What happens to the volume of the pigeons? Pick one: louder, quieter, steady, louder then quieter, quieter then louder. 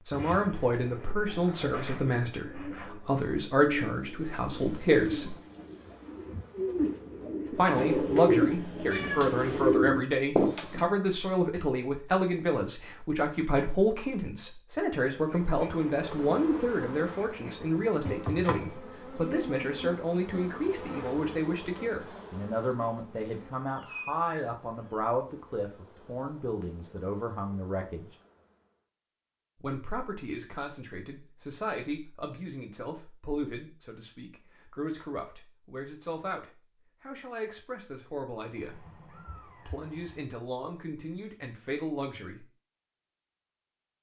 louder.